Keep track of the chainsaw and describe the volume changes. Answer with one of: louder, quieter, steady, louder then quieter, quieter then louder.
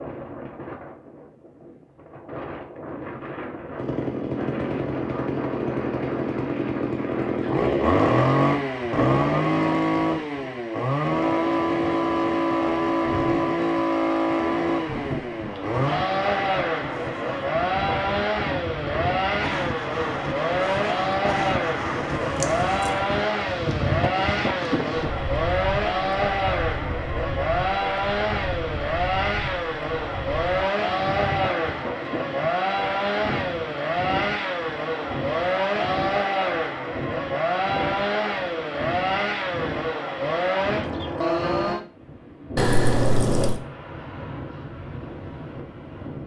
steady.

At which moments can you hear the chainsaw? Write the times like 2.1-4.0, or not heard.
3.8-41.8.